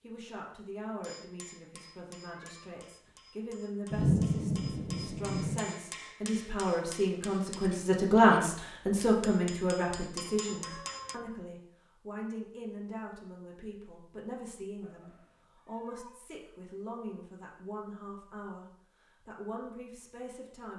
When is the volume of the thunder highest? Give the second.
4 s.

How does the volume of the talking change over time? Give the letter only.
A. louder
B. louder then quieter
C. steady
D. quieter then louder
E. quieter
B.